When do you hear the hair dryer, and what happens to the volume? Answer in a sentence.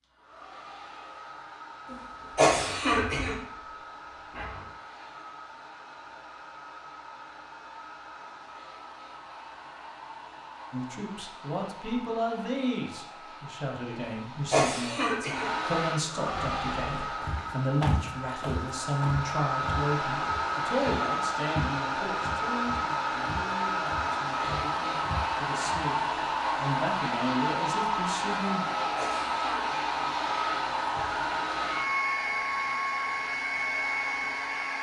The hair dryer can be heard from 0.0 to 34.7 s, getting louder.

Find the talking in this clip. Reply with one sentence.
You can hear the talking from 10.7 to 28.6 s.